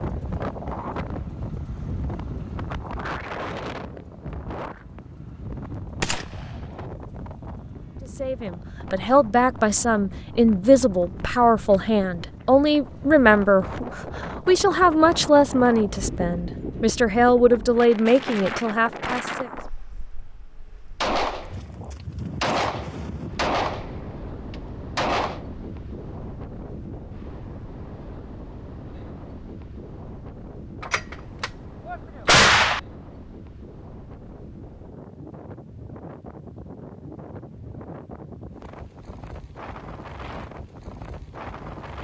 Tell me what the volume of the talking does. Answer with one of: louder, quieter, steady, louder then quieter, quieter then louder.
steady.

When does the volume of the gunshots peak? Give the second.
32 s.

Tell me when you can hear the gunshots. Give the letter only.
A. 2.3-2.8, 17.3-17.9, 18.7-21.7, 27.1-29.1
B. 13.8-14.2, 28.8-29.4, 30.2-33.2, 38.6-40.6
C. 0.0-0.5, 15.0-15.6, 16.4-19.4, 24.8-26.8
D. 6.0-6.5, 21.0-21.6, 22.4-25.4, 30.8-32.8
D.